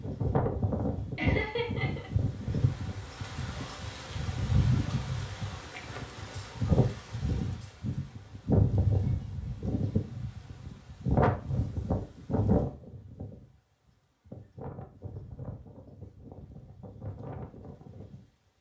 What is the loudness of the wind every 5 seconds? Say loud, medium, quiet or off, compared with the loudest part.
loud, loud, loud, quiet.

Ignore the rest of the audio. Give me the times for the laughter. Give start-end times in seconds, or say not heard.
1.1-2.1.